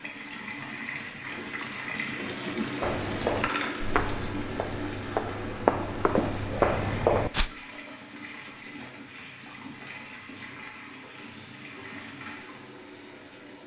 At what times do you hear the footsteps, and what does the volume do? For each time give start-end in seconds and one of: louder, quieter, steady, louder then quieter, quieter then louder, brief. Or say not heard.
2.8-7.5 quieter then louder.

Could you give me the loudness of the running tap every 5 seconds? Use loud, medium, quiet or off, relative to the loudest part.
loud, medium, medium.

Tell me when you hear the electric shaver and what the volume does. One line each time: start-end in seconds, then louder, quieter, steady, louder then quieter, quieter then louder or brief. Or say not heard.
not heard.